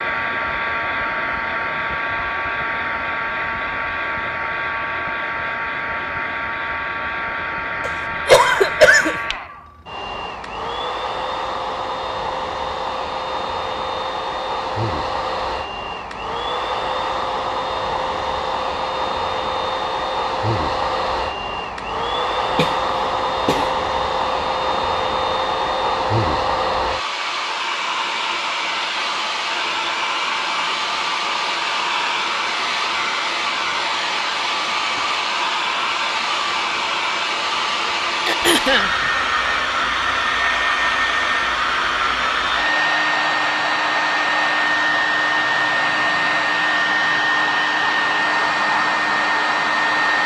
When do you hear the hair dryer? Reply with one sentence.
You can hear the hair dryer from 0.0 to 50.2 s.